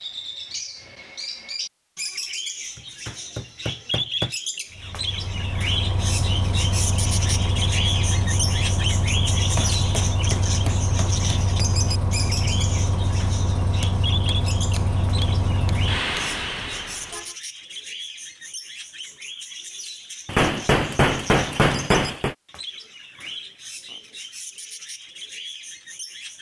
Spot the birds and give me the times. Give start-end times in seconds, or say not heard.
0.0-26.3.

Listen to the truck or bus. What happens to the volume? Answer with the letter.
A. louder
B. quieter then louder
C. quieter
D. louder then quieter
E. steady
E.